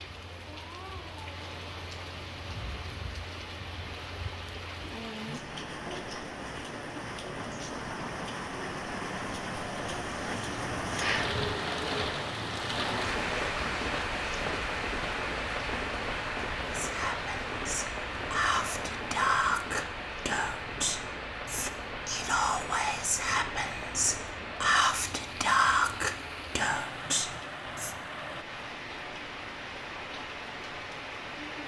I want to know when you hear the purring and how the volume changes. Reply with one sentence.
The purring can't be heard in this clip.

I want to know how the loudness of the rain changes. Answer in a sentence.
The volume of the rain goes up, then down.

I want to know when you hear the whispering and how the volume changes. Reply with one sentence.
You can hear the whispering from 16.6 to 27.9 s, getting louder.